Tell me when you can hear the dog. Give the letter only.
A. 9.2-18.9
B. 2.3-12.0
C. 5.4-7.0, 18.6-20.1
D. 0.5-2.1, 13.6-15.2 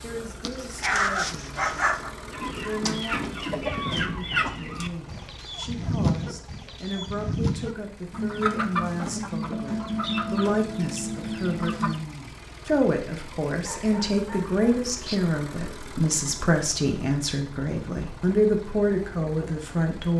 D.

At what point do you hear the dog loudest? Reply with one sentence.
The loudest moment of the dog is at 1 second.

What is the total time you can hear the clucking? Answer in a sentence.
You can hear the clucking for 10 seconds altogether.